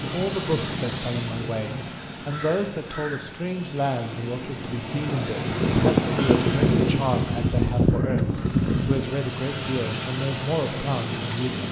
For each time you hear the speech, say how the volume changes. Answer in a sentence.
The speech can be heard from 0.0 to 11.6 s, at a steady volume.